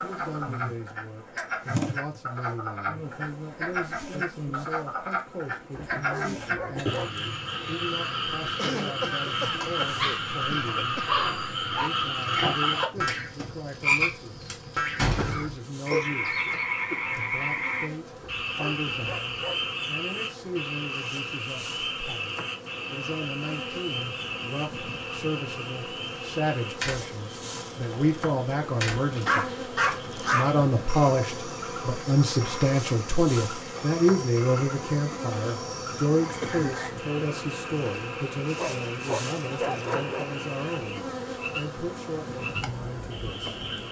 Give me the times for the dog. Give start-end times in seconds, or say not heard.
5.9-7.2, 9.9-11.9, 18.4-19.7, 29.1-30.6, 38.5-40.2.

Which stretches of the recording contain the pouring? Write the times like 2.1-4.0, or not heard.
not heard.